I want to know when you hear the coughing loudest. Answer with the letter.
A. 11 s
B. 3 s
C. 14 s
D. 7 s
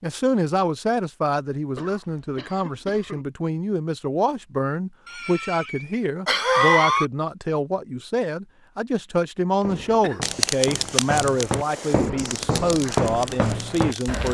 D.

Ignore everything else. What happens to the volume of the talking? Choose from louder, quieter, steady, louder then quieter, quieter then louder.
steady.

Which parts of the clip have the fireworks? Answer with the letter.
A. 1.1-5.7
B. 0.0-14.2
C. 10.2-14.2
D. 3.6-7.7
C.